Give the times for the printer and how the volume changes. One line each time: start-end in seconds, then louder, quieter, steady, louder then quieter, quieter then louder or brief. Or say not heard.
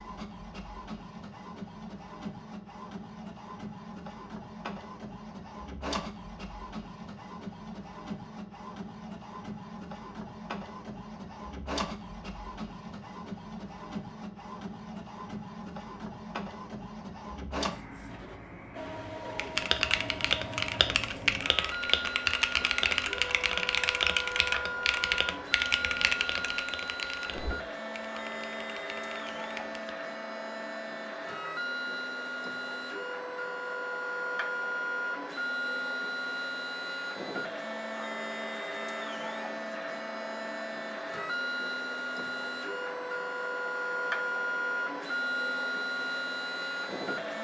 0.0-47.3 louder.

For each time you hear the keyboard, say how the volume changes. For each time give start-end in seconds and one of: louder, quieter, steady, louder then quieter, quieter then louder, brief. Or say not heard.
19.4-29.8 quieter.